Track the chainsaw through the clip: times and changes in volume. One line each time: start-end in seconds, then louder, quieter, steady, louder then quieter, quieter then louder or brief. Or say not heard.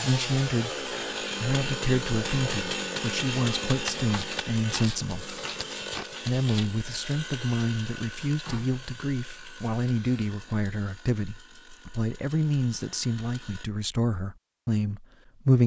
0.0-13.7 quieter.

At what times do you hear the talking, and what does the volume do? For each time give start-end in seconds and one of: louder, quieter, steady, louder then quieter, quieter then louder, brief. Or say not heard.
0.0-15.6 steady.